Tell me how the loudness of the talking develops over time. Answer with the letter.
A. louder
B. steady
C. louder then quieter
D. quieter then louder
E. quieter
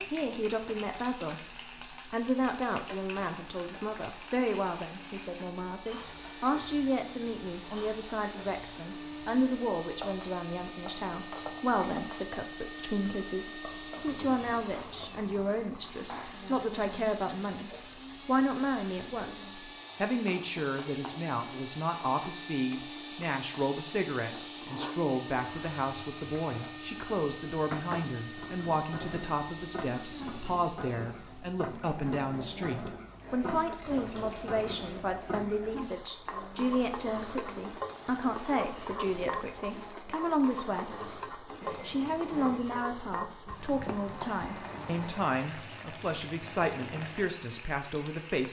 B.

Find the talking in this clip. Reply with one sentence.
The talking can be heard from 0.1 to 48.4 s.